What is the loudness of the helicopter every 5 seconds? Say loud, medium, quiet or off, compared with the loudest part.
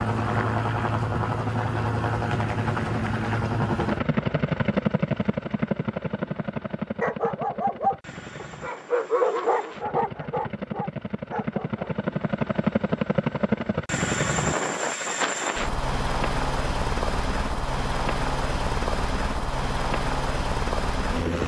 loud, medium, loud, loud, loud.